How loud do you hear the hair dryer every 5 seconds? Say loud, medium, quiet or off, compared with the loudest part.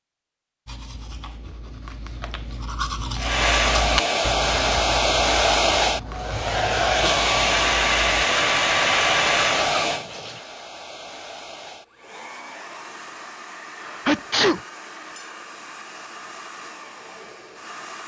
loud, loud, quiet, quiet.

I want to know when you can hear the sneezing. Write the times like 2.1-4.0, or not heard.
6.3-7.2, 13.8-14.6.